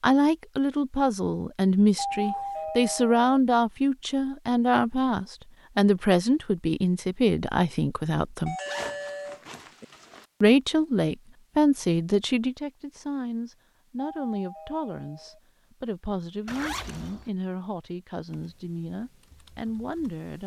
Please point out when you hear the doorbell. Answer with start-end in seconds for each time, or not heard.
1.9-3.2, 8.4-9.8, 14.0-15.4.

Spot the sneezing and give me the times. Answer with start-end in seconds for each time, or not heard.
not heard.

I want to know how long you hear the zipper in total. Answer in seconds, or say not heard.
3 s.